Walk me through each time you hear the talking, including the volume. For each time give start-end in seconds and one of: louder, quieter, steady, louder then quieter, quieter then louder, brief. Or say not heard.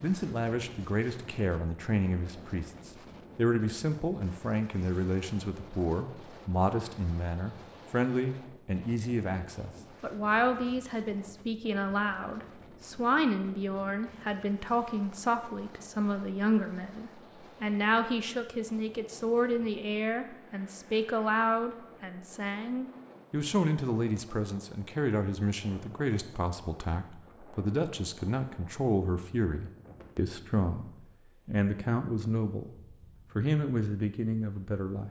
0.0-32.8 steady
33.4-35.0 brief.